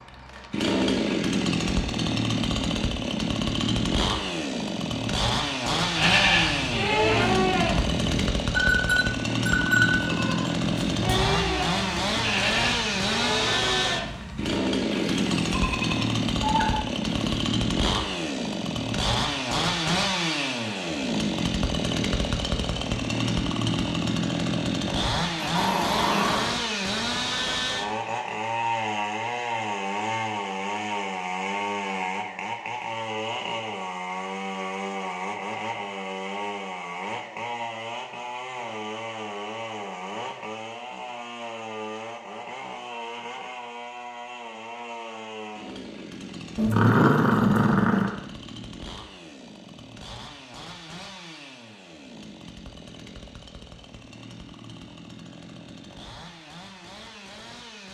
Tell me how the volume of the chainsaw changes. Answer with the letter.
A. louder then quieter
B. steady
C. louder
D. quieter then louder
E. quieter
E.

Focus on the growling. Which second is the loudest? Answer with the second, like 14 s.
47 s.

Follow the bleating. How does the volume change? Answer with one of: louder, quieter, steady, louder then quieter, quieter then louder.
quieter.